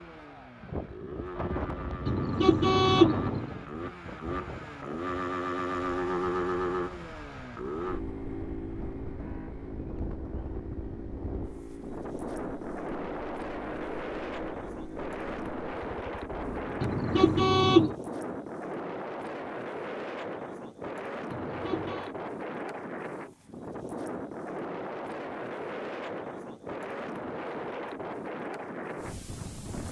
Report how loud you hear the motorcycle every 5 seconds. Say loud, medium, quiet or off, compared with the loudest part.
medium, loud, medium, medium, off, off.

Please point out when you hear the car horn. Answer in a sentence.
The car horn can be heard from 2.0 to 3.5 s, from 16.8 to 17.9 s and from 21.3 to 22.1 s.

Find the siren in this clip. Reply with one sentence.
You can't hear the siren here.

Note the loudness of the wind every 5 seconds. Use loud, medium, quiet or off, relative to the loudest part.
loud, medium, loud, loud, loud, loud.